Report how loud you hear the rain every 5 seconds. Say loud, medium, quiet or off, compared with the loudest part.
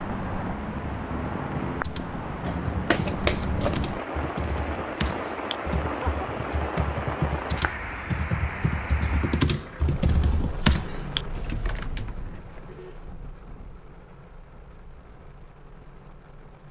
loud, loud, medium, quiet.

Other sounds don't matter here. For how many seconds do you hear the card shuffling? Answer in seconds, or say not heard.
3 s.